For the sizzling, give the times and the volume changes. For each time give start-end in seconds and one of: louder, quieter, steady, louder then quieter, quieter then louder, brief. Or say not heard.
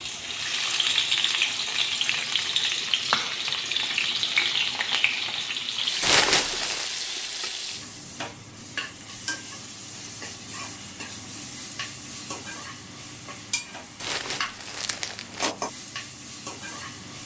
0.0-17.2 quieter.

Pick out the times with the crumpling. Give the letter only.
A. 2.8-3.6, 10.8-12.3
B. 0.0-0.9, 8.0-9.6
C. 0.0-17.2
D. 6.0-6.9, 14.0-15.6
D.